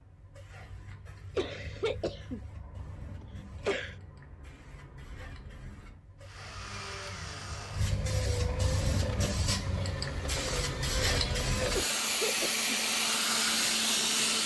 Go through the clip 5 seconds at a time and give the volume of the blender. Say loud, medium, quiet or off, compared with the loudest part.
off, medium, loud.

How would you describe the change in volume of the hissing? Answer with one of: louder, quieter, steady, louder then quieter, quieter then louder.
louder.